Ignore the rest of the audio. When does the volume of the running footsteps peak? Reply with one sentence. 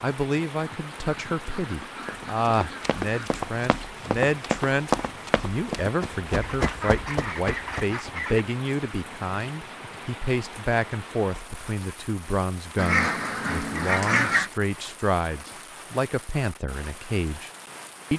The volume of the running footsteps peaks at 5 seconds.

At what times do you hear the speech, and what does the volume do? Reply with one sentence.
The speech can be heard from 0.0 to 17.5 s, at a steady volume.